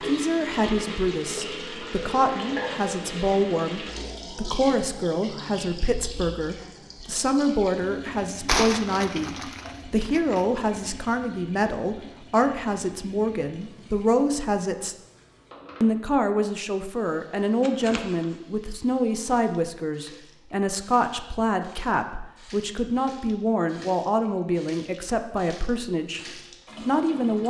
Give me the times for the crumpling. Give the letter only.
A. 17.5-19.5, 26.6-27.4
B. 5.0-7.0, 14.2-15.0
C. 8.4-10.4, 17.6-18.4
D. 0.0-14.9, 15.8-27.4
C.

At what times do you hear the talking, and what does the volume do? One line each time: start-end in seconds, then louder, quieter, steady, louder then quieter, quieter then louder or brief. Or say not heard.
0.0-14.9 steady
15.8-27.4 steady.